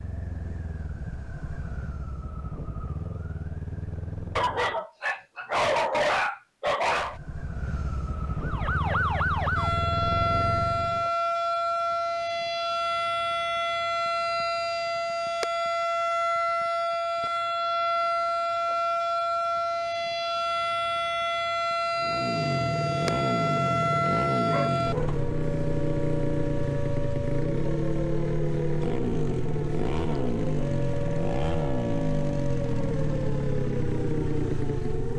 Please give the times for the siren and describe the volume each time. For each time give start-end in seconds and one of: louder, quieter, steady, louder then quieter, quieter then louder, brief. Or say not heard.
8.4-35.1 quieter.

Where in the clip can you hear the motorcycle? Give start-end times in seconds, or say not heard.
0.0-4.8, 6.9-11.1, 21.9-35.1.